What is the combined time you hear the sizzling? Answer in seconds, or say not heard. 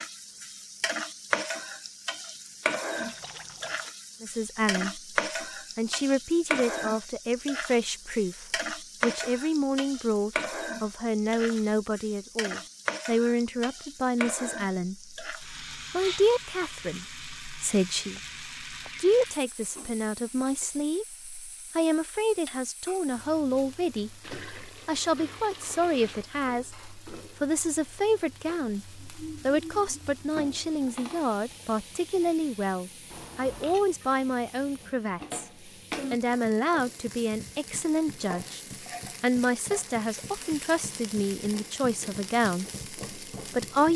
44 s.